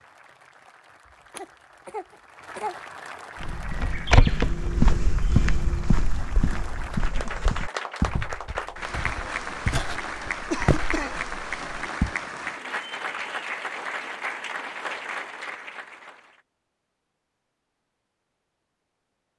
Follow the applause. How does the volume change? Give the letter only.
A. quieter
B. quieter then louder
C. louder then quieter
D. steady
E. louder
E.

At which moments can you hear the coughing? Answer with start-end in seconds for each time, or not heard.
1.3-2.8, 10.5-11.2.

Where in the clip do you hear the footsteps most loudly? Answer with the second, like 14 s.
4 s.